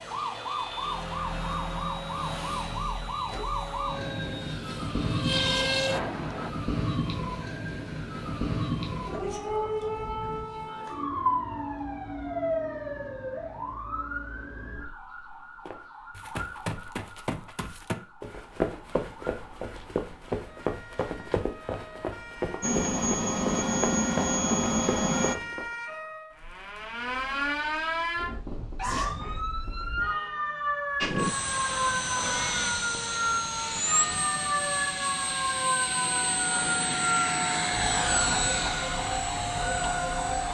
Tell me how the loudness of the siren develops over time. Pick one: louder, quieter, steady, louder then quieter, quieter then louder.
quieter then louder.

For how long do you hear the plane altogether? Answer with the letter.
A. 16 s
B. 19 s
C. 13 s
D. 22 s
B.